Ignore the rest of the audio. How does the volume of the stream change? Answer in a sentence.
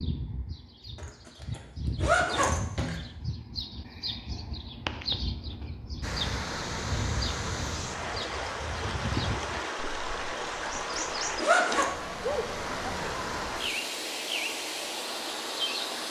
The loudness of the stream stays about the same.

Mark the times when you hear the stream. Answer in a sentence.
You can hear the stream from 6.0 to 16.0 s.